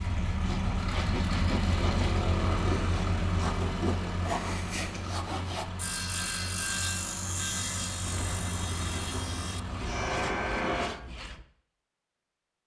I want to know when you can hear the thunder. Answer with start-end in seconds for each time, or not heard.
8.1-9.8.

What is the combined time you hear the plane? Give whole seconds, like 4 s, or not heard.
11 s.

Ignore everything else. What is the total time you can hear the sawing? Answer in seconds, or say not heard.
11 s.